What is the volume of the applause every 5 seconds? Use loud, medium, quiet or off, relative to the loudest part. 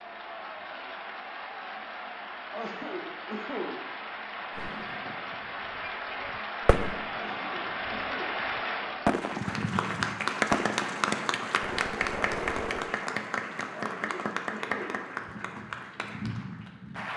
medium, loud, loud, medium.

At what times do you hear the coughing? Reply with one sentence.
You can hear the coughing from 2.5 to 3.9 s, from 7.1 to 8.4 s and from 13.7 to 15.1 s.